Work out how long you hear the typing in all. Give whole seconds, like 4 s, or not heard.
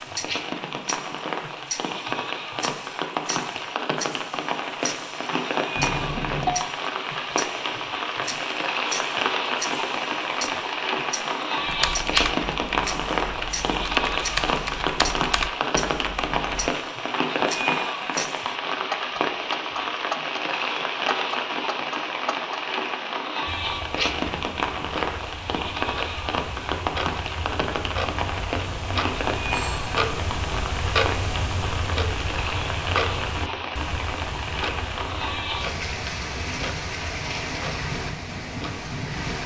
5 s.